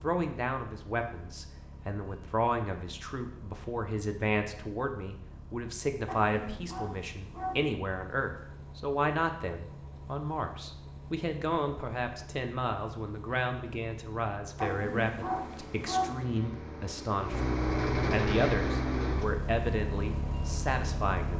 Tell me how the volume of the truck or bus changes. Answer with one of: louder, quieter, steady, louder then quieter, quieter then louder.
louder.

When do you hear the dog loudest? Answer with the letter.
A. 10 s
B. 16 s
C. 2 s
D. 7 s
B.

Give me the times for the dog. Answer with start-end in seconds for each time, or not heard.
6.0-7.7, 14.6-16.2.